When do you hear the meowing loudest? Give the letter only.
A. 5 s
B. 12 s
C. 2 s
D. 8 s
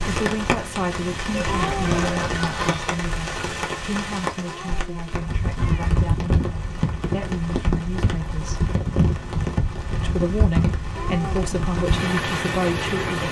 C.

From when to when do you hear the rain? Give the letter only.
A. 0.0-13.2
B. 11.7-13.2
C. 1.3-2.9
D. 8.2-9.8
A.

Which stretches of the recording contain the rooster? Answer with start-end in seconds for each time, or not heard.
1.3-2.9.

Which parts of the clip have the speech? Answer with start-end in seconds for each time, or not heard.
0.0-8.7, 10.0-13.2.